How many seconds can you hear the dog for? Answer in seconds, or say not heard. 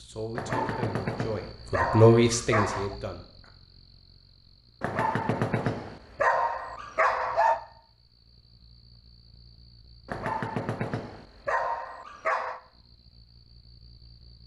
8 s.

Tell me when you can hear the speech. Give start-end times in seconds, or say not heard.
0.0-3.5.